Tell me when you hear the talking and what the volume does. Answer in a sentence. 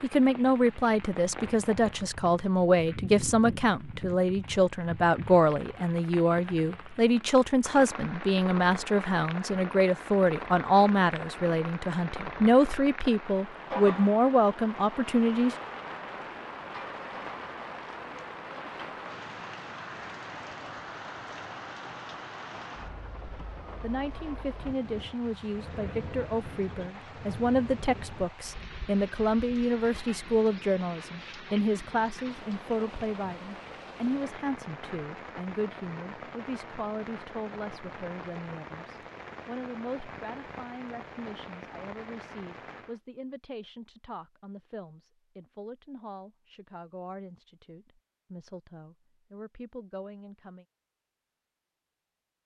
You can hear the talking from 0.0 to 15.6 s, at a steady volume; and from 23.8 to 50.6 s, getting quieter.